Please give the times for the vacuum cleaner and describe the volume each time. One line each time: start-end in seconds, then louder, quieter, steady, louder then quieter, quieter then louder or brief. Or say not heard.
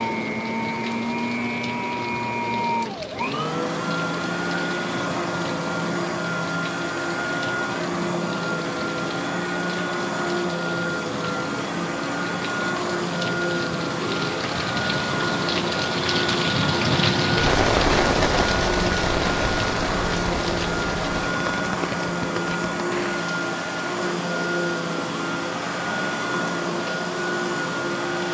0.0-28.2 steady.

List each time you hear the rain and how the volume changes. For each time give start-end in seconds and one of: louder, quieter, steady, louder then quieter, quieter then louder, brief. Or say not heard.
0.0-28.2 louder then quieter.